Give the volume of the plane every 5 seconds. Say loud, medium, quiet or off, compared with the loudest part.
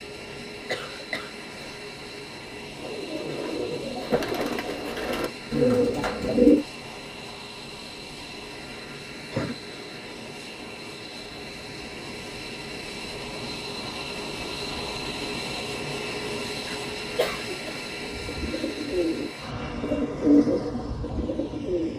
medium, medium, loud, loud, medium.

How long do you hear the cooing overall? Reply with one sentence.
You can hear the cooing for 8 seconds altogether.